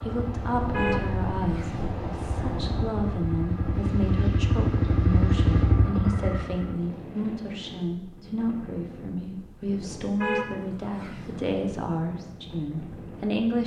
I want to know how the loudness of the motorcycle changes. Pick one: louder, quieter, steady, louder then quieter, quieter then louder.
louder.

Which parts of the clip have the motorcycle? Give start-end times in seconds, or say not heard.
0.0-6.8.